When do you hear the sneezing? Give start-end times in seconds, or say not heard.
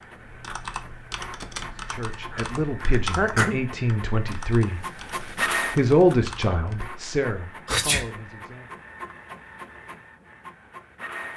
2.3-3.6, 7.7-8.1.